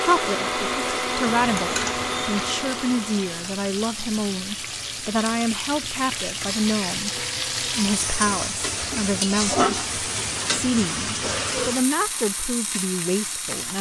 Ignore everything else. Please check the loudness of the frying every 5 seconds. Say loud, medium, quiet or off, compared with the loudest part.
medium, loud, loud.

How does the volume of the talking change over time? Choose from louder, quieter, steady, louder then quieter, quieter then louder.
steady.